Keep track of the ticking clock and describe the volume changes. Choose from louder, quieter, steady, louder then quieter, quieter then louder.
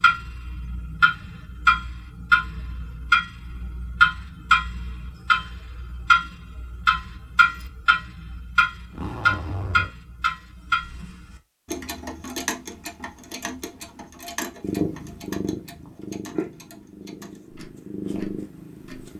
quieter.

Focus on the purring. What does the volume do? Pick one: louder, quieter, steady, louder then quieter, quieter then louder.
quieter then louder.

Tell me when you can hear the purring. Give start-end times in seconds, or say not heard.
14.6-19.1.